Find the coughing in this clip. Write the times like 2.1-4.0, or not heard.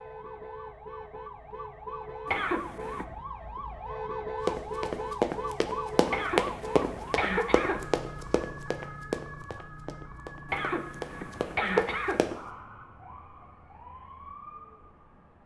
2.2-3.0, 6.1-7.9, 10.4-12.3.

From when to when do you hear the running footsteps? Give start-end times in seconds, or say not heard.
4.5-12.3.